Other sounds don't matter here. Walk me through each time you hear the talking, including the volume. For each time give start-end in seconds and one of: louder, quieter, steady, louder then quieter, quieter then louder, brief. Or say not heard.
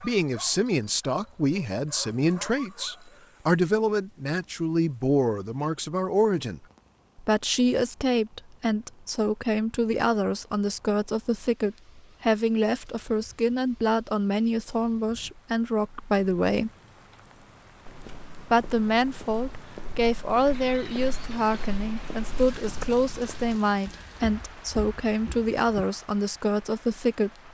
0.0-16.7 steady
18.5-27.3 steady.